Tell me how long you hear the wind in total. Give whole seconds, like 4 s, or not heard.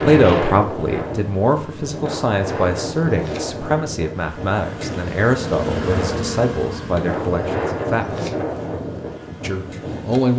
10 s.